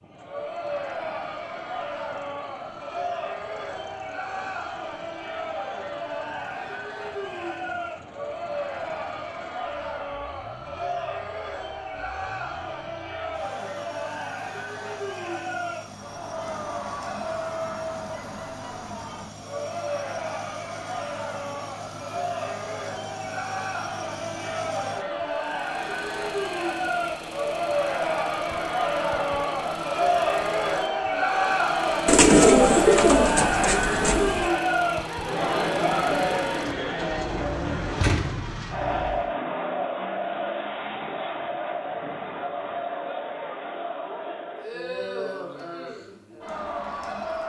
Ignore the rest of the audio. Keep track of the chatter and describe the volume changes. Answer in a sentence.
The loudness of the chatter goes up, then down.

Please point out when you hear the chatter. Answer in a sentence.
You can hear the chatter from 0.1 to 47.4 s.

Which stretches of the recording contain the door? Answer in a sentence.
You can hear the door from 38.0 to 38.5 s.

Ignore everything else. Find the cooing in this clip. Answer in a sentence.
The cooing can be heard from 32.0 to 34.5 s.